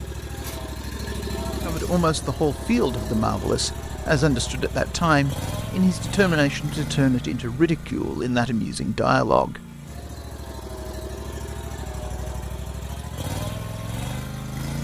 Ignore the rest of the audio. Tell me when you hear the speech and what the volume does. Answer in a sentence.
The speech can be heard from 1.6 to 9.6 s, at a steady volume.